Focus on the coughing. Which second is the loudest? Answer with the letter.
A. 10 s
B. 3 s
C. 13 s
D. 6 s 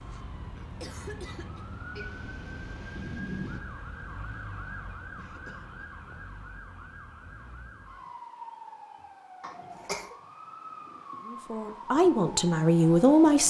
A.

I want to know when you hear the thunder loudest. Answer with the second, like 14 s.
3 s.